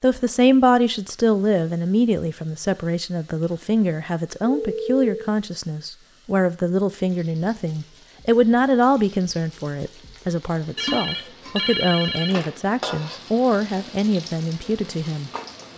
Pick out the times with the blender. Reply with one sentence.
You can't hear the blender here.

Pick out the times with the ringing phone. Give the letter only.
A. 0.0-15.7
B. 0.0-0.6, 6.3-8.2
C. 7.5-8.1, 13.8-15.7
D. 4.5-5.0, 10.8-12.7
D.